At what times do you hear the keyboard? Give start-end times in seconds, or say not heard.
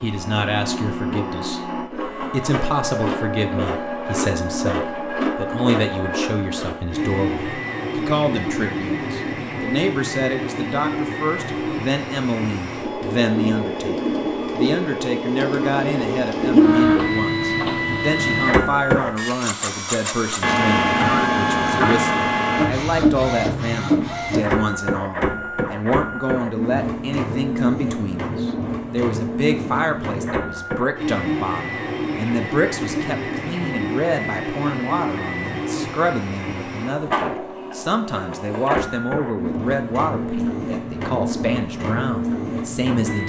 not heard.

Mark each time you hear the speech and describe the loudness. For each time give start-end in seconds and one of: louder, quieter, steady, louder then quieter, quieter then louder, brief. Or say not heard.
0.0-43.2 steady.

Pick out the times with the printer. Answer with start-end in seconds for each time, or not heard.
0.0-43.2.